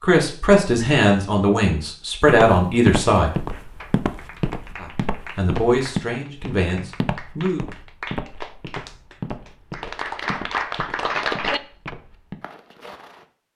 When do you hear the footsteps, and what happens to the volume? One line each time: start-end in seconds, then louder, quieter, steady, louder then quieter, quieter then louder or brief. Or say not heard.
2.2-13.2 quieter.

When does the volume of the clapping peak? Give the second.
11 s.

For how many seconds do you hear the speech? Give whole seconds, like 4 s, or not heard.
6 s.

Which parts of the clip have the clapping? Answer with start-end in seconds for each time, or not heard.
3.5-11.9.